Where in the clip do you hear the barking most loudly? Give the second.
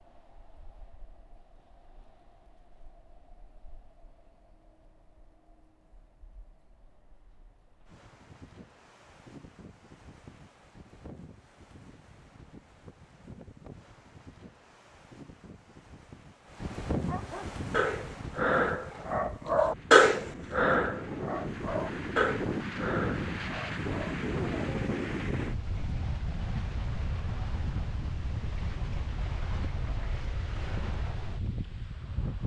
20 s.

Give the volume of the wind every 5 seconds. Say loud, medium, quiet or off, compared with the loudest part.
quiet, quiet, quiet, medium, loud, loud, medium.